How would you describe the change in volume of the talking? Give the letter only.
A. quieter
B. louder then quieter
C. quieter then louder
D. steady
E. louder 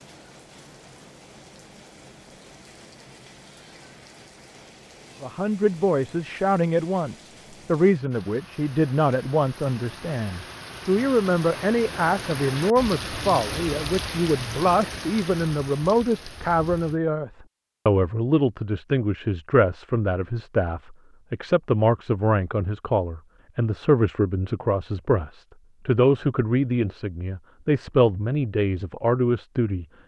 D.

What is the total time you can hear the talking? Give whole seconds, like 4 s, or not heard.
25 s.